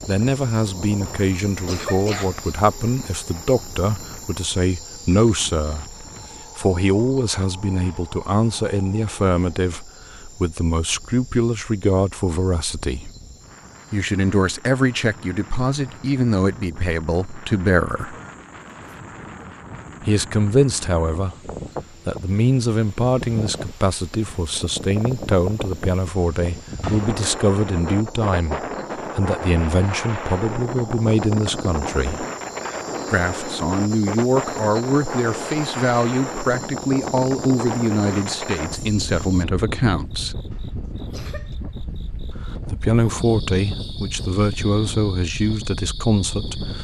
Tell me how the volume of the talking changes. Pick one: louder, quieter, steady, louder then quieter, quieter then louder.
steady.